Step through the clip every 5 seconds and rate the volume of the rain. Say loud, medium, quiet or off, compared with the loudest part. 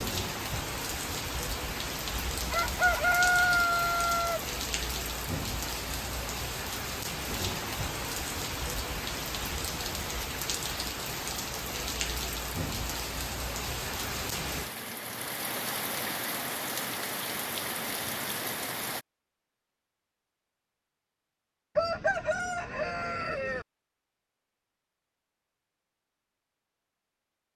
loud, loud, loud, loud, off, off.